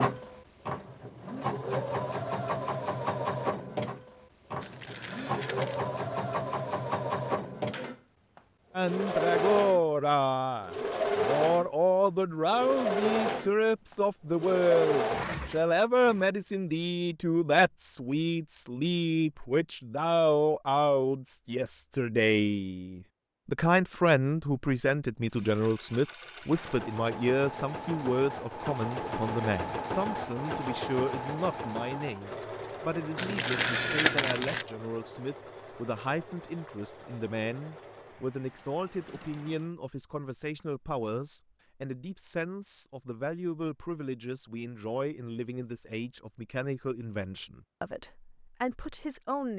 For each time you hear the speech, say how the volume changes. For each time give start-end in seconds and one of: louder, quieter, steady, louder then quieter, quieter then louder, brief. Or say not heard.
8.8-49.5 quieter.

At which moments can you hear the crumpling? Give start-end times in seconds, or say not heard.
4.6-5.9, 33.1-34.6.